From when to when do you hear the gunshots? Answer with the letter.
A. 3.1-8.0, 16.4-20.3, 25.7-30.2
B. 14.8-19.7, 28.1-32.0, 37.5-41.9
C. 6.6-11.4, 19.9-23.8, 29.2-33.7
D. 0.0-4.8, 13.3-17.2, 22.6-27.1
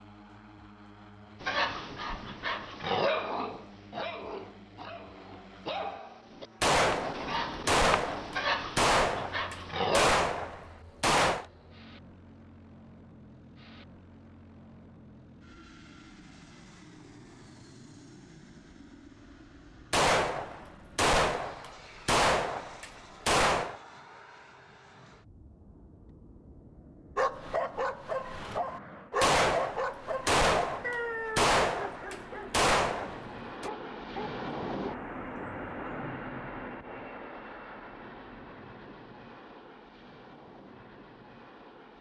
C.